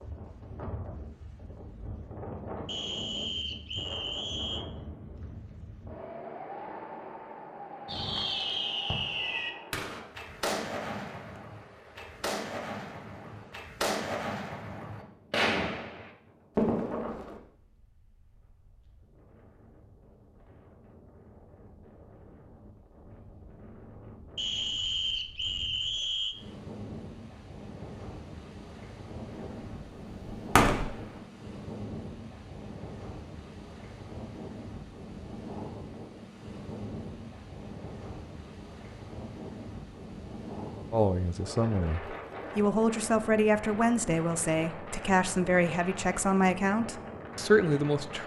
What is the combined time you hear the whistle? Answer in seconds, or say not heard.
4 s.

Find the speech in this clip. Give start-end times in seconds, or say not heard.
40.9-48.2.